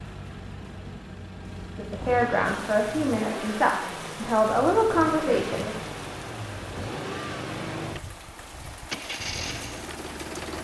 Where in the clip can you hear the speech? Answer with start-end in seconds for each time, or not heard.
1.8-5.8.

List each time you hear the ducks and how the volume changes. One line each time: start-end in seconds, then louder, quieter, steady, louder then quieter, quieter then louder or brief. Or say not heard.
not heard.